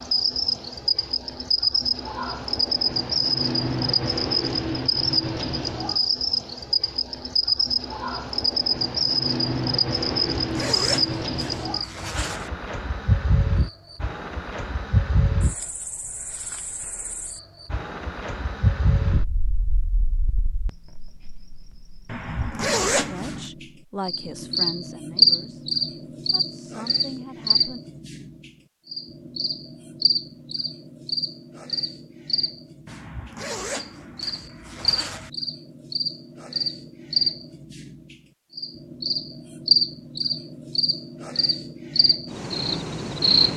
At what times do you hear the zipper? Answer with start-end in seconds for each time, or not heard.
10.1-12.5, 22.1-23.5, 32.9-35.3.